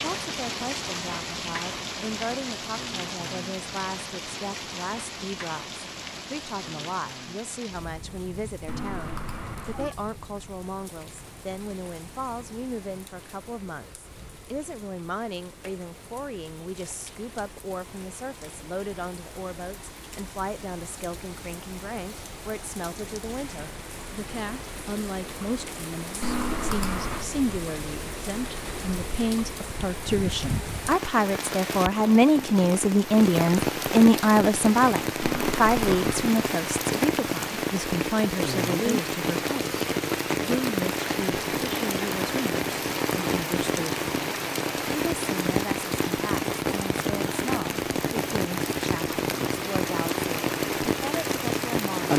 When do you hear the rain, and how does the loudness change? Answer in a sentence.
You can hear the rain from 0.0 to 52.1 s, getting quieter then louder.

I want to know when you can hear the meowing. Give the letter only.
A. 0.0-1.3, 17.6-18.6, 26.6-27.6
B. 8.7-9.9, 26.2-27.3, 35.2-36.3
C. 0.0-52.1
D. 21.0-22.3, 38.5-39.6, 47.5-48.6
B.